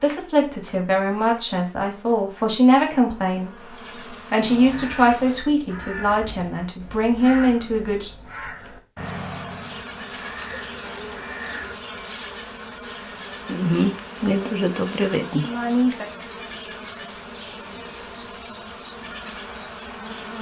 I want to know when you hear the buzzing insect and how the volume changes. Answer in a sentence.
The buzzing insect can be heard from 0.0 to 5.5 s, getting louder; and from 9.0 to 20.3 s, getting louder then quieter.